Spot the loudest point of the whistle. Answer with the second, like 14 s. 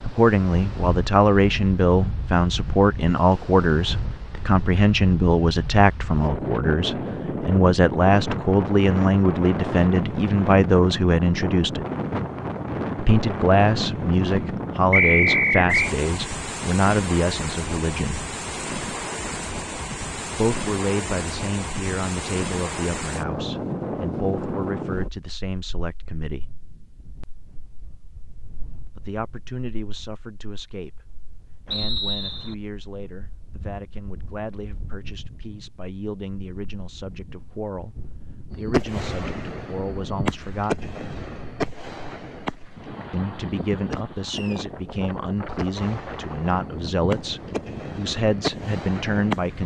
15 s.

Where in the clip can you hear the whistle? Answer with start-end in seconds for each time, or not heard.
14.9-15.9, 31.7-32.5.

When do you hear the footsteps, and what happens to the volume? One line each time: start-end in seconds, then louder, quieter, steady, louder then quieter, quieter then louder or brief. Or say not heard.
not heard.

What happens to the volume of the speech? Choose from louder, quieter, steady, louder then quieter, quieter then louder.
quieter then louder.